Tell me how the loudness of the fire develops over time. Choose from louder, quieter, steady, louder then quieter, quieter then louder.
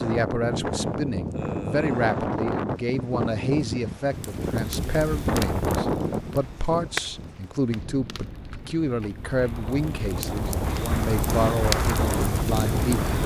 quieter then louder.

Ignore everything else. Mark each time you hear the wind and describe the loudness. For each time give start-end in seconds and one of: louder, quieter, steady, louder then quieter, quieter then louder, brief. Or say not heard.
0.0-13.2 quieter then louder.